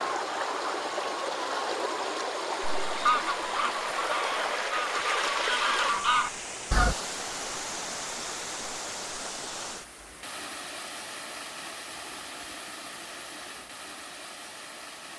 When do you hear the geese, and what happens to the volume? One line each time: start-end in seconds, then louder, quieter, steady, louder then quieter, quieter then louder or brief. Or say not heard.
2.6-7.0 quieter then louder.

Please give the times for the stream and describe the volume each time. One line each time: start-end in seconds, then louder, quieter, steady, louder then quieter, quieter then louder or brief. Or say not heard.
0.0-15.1 quieter.